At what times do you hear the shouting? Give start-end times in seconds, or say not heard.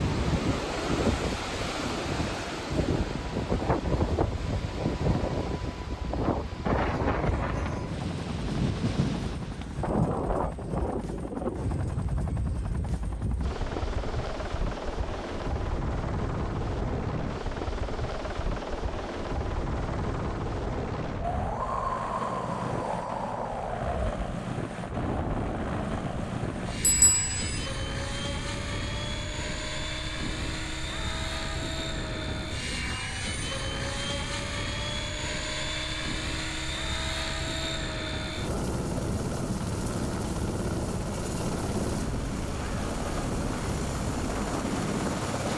not heard.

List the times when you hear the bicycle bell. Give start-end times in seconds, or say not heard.
26.8-27.6.